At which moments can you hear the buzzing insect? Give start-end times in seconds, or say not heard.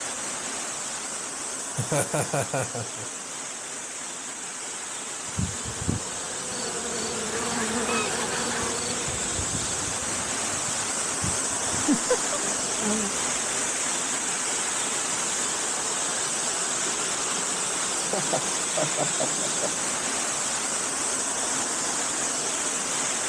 5.2-13.6.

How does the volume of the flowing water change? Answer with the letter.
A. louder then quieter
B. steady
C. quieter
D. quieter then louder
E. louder
E.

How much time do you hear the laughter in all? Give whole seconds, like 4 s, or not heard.
4 s.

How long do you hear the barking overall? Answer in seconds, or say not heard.
not heard.